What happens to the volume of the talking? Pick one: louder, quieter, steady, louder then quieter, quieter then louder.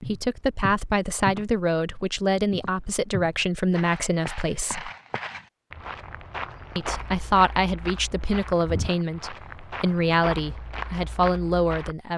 steady.